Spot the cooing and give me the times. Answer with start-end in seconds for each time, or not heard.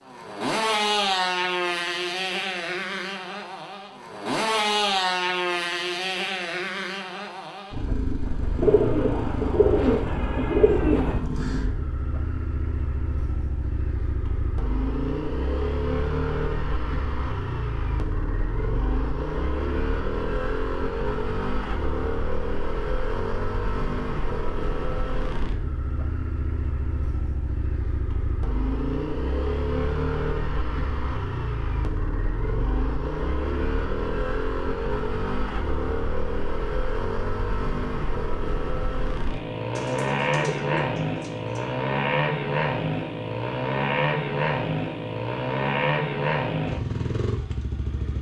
8.6-11.2, 39.8-41.7.